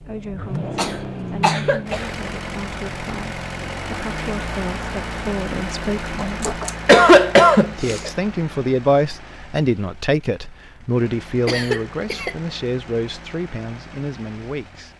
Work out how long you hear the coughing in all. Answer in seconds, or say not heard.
4 s.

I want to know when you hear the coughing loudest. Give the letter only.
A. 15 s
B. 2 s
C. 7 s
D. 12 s
C.